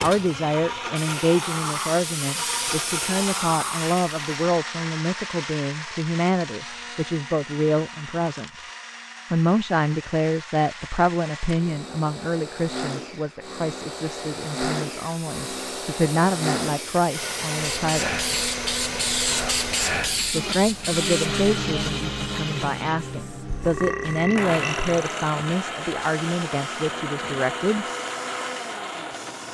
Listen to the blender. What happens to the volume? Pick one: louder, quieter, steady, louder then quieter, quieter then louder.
quieter then louder.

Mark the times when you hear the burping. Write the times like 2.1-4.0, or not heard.
23.4-25.2.